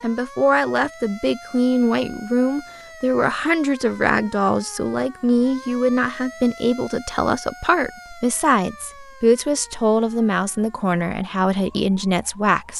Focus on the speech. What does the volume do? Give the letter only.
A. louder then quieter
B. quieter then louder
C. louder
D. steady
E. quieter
D.